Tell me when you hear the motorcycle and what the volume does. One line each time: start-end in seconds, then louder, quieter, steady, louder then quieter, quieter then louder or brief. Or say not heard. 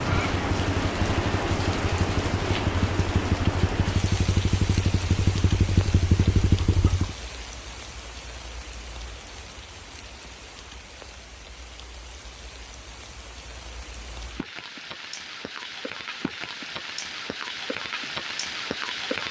0.0-7.2 louder.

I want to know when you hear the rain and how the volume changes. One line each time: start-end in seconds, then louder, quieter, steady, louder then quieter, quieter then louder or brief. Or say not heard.
0.0-19.2 quieter then louder.